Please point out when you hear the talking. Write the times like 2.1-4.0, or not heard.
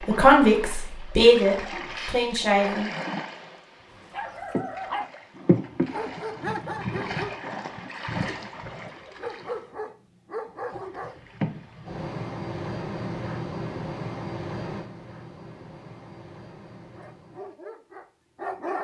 0.1-2.9.